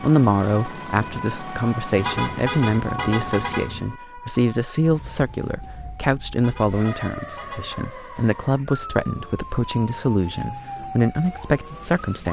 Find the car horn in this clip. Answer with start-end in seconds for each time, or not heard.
1.9-4.0, 6.3-7.9.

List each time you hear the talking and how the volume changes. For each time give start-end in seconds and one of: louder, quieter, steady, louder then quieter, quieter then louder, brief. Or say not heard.
0.0-12.2 steady.